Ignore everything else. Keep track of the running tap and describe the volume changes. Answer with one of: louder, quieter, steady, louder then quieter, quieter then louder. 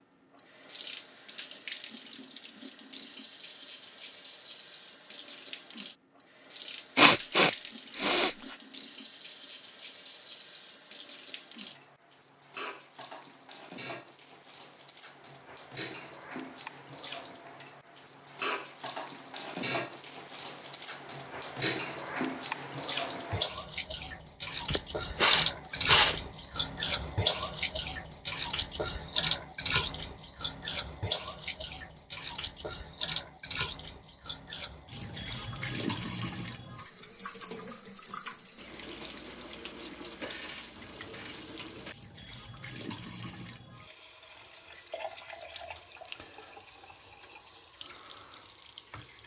louder then quieter.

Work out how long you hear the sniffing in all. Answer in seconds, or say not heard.
3 s.